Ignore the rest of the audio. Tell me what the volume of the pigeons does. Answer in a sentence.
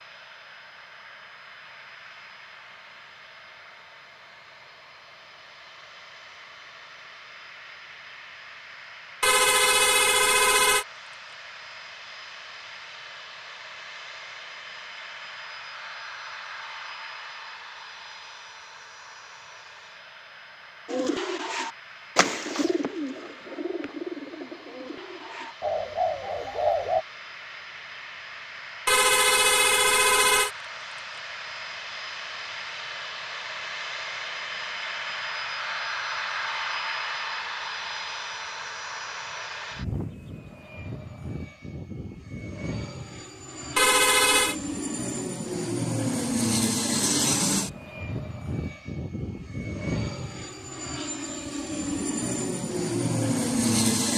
The volume of the pigeons goes down, then up.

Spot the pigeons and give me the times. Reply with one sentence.
You can hear the pigeons from 20.9 to 27.1 s.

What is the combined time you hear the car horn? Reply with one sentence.
You can hear the car horn for 4 seconds altogether.